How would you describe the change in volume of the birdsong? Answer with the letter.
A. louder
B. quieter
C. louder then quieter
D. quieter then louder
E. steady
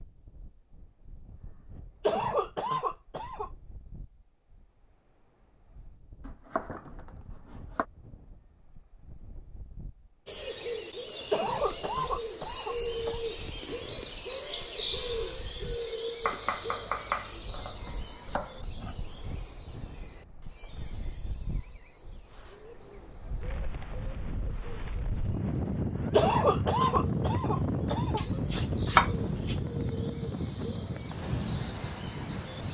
D.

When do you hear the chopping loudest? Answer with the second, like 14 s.
29 s.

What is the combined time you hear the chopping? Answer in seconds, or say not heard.
6 s.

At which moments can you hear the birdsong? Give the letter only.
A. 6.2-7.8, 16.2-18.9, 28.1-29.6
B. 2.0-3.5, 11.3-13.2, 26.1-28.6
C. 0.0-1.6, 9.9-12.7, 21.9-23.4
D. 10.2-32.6
D.